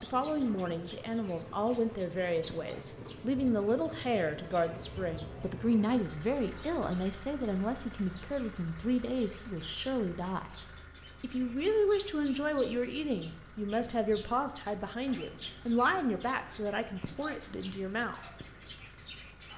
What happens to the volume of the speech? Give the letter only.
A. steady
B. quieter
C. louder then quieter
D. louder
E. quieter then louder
A.